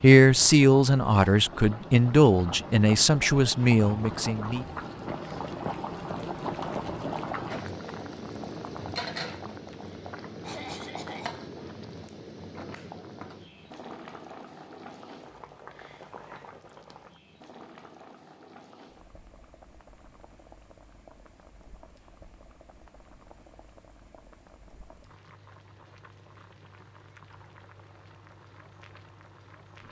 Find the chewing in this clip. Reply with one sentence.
You can't hear the chewing here.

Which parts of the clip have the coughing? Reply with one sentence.
The coughing can be heard from 10.4 to 11.3 s.